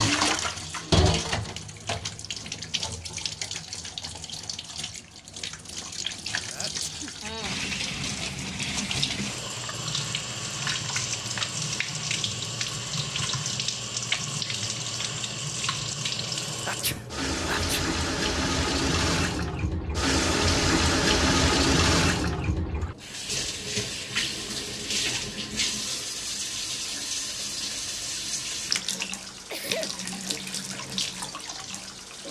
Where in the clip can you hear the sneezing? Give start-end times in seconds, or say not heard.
6.5-7.2, 16.6-17.9, 29.5-29.9.